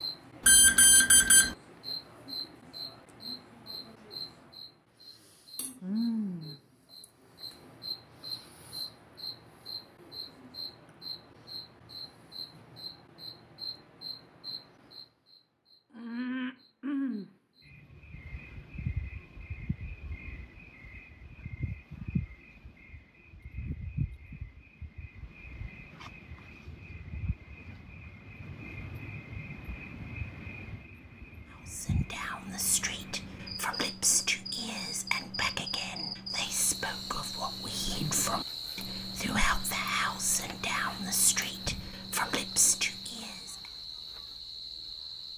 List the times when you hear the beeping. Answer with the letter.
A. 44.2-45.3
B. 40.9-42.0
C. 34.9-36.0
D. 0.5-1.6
D.